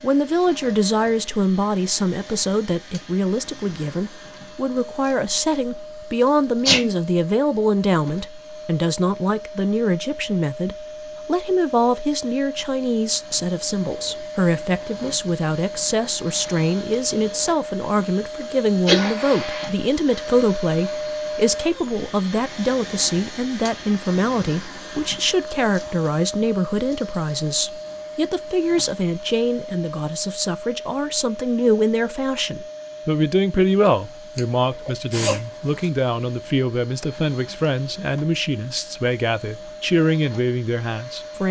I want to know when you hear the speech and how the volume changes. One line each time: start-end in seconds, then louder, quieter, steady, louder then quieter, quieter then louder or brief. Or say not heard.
0.0-41.4 steady.